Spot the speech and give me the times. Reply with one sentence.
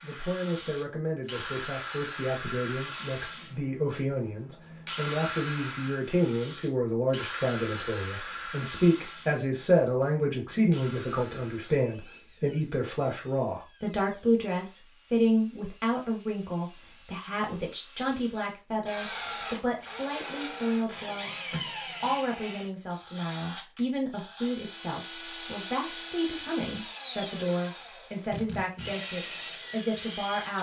The speech can be heard from 0.0 to 30.5 s.